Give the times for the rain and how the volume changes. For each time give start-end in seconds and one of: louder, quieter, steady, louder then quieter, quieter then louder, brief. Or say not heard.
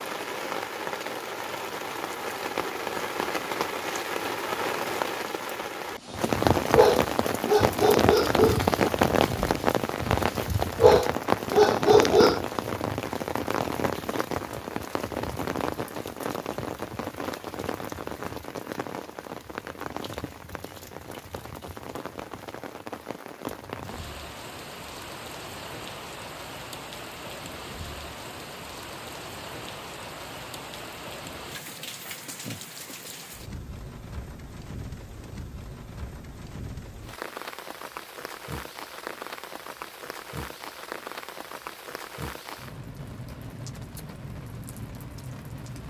0.0-45.8 quieter.